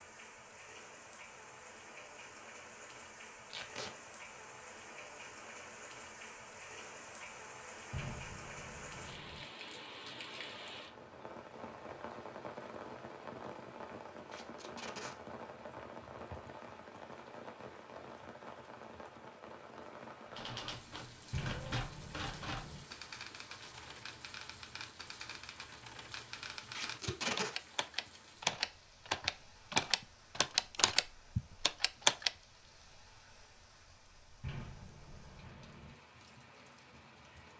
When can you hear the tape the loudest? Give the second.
27 s.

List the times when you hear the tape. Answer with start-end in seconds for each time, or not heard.
3.5-4.0, 14.3-15.2, 26.8-27.5.